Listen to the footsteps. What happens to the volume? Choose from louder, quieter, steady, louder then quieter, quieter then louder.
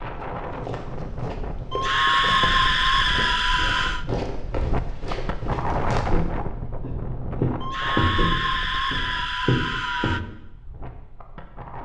louder.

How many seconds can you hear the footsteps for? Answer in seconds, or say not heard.
10 s.